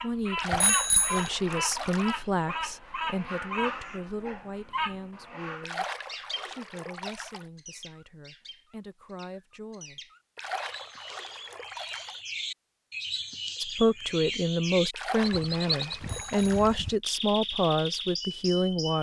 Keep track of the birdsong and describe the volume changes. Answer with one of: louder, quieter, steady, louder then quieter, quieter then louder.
quieter then louder.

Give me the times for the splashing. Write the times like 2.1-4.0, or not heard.
0.3-2.2, 5.6-7.5, 10.3-12.2, 14.9-16.8.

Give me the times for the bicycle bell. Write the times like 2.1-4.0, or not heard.
0.5-1.3, 16.0-16.6.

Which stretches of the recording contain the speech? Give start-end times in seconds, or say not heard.
0.0-10.1, 13.6-18.9.